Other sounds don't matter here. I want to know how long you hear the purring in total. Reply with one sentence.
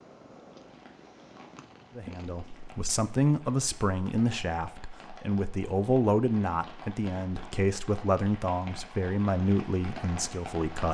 The purring can be heard for 3 seconds in total.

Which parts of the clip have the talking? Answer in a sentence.
You can hear the talking from 1.9 to 10.8 s.